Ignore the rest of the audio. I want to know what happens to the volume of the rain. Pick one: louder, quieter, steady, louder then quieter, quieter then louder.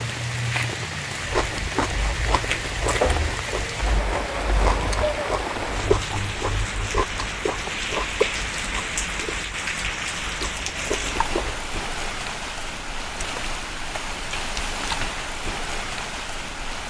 steady.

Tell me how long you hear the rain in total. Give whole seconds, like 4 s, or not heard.
17 s.